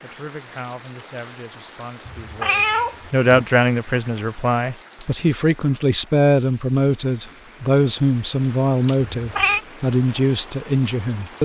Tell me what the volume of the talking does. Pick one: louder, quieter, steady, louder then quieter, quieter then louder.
louder.